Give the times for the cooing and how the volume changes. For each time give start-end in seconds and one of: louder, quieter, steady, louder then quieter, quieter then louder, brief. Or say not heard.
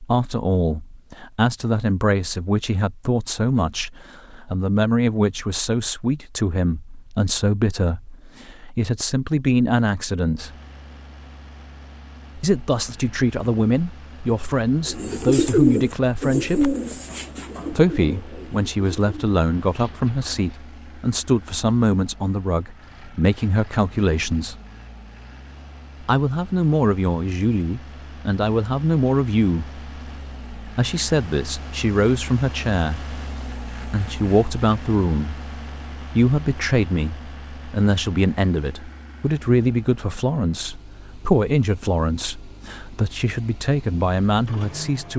14.8-20.6 quieter.